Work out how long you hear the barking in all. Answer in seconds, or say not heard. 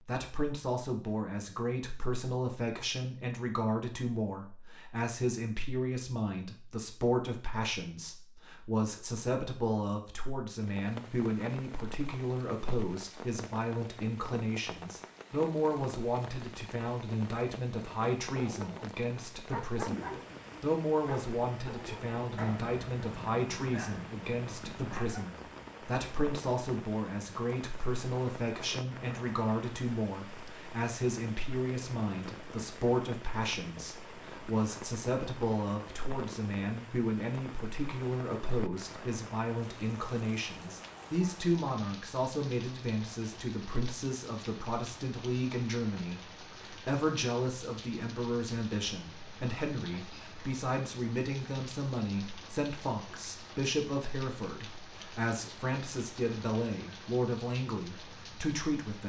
7 s.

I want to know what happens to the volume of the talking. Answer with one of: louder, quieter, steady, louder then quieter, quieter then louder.
steady.